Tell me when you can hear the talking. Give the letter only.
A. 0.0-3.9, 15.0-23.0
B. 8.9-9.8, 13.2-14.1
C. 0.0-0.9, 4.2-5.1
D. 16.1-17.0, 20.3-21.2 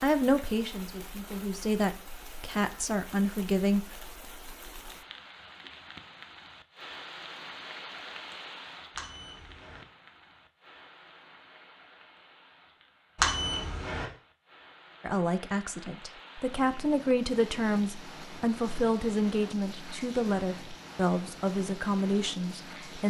A.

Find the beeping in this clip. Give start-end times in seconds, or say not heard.
8.9-9.8, 13.2-14.1.